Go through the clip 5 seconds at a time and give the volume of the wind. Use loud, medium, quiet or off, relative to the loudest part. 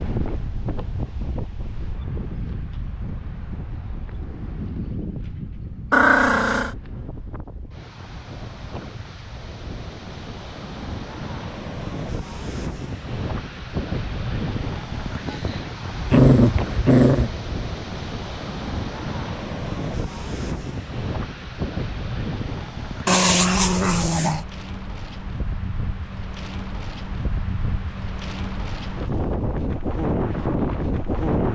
medium, quiet, medium, medium, medium, medium, loud.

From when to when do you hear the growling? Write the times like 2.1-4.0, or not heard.
5.9-6.7, 16.1-17.3, 23.1-24.4.